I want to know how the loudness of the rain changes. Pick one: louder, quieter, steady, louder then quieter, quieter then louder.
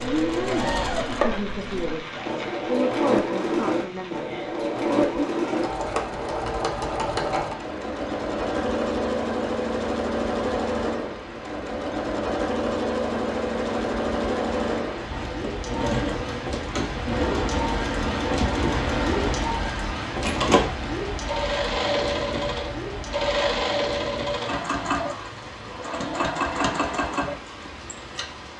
louder then quieter.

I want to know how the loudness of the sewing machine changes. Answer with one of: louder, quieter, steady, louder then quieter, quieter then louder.
steady.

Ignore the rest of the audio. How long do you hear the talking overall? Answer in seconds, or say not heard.
5 s.